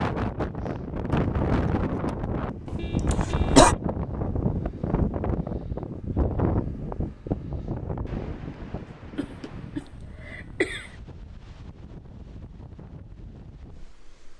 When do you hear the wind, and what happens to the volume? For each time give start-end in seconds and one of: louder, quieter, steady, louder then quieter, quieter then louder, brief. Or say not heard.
0.0-14.3 quieter.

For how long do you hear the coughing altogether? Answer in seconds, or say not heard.
3 s.